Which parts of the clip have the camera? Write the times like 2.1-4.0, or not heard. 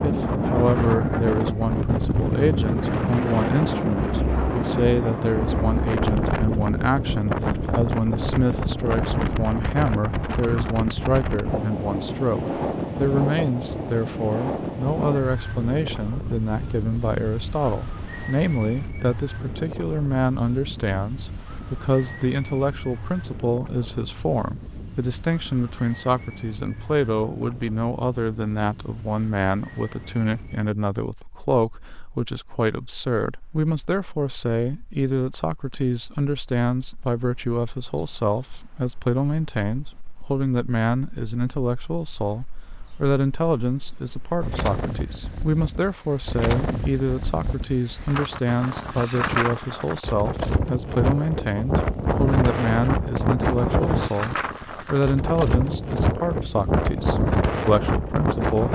not heard.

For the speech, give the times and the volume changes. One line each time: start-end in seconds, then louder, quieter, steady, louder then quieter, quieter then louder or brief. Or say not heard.
0.0-58.7 steady.